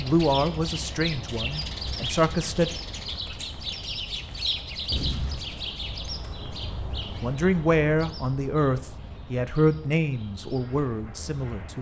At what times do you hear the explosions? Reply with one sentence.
You can hear the explosions from 4.9 to 5.8 s.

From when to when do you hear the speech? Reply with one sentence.
The speech can be heard from 0.0 to 2.7 s and from 7.2 to 11.7 s.